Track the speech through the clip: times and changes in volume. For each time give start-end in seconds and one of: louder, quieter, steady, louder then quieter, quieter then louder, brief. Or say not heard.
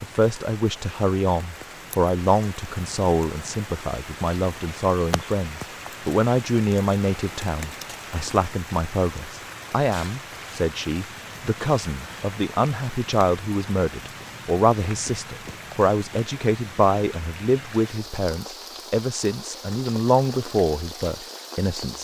0.0-21.9 steady.